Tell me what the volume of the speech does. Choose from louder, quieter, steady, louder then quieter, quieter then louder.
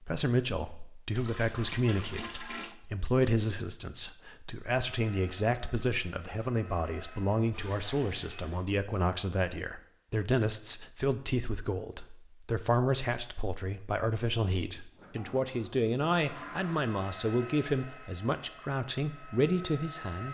steady.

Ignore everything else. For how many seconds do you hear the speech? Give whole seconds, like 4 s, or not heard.
20 s.